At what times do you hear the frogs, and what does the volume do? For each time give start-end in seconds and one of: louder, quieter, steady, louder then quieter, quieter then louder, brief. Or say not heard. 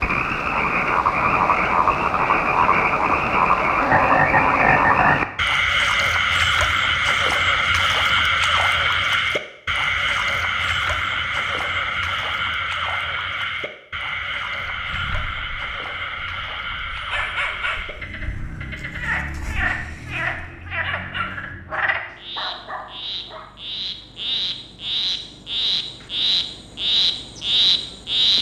0.0-28.3 quieter then louder.